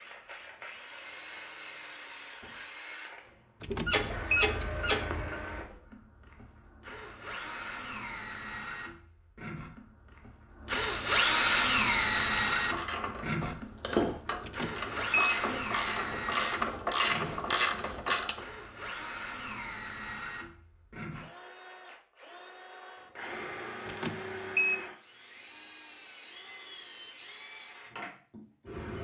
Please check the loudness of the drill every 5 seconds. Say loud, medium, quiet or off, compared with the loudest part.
quiet, quiet, loud, medium, quiet, quiet.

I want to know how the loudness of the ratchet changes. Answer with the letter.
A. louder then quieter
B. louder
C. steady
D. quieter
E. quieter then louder
B.